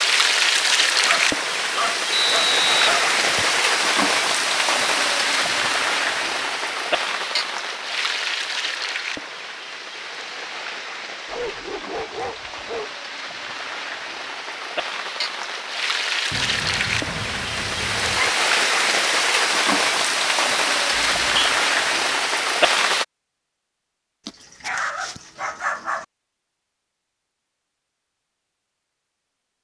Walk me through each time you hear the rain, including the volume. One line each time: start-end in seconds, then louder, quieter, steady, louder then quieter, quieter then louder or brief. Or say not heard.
0.0-23.1 quieter then louder.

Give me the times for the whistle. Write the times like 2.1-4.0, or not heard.
2.1-3.6, 20.9-21.5.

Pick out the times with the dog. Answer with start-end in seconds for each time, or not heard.
1.1-3.1, 11.2-12.9, 16.3-18.3, 24.2-26.1.